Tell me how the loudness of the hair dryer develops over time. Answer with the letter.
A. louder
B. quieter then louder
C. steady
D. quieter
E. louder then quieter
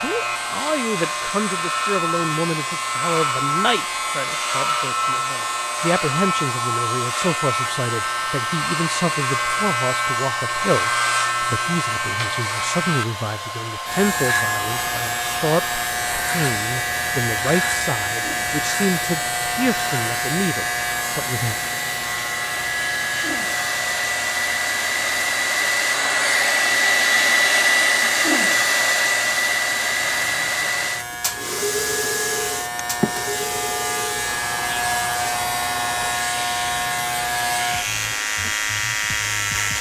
E.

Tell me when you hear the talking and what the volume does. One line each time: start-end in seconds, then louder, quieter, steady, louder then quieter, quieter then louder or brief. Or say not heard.
0.0-21.6 steady.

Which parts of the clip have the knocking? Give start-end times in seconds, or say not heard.
32.8-33.5.